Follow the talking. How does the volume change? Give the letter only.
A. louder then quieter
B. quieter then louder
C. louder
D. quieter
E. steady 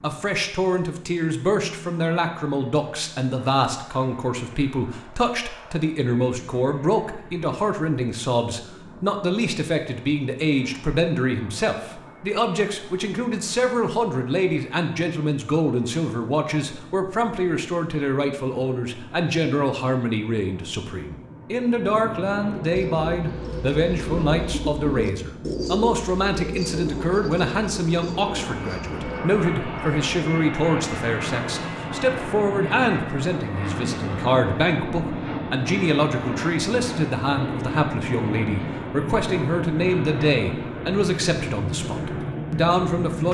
E.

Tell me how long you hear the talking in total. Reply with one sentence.
The talking can be heard for 43 seconds in total.